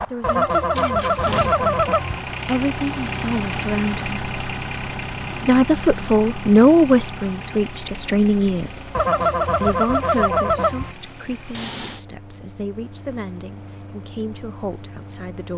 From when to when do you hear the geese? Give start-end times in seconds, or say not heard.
0.2-2.2, 8.9-10.9.